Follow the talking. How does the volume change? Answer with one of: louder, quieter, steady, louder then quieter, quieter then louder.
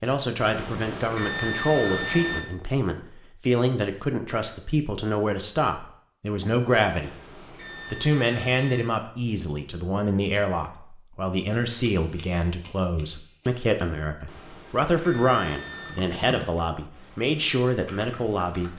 steady.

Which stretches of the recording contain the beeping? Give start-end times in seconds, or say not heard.
0.3-2.4, 6.8-8.8, 14.2-16.1.